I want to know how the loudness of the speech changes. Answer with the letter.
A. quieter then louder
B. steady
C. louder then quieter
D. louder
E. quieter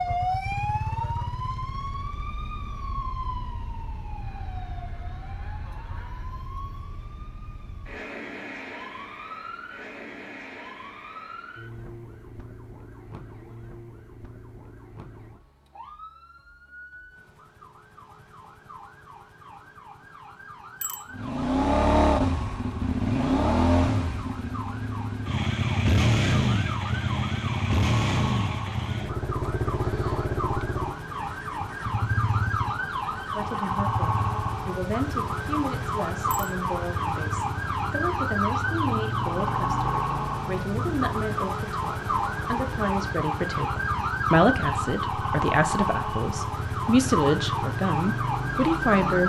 D.